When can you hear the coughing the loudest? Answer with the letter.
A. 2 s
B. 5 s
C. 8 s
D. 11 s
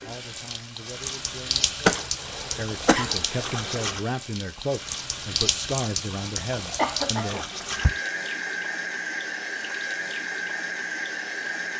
A.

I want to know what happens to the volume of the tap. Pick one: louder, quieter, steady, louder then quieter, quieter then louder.
steady.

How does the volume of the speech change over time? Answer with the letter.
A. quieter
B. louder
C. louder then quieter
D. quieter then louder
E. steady
B.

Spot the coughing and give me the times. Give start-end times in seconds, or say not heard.
1.9-3.9, 6.8-7.9.